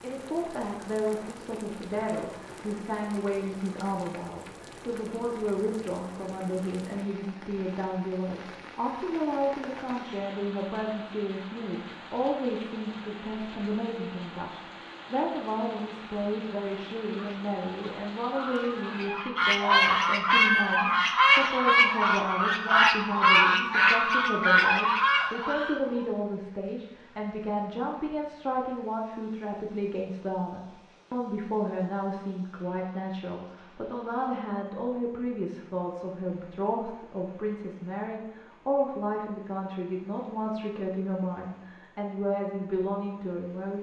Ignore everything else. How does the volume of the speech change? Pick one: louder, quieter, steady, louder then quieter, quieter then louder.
steady.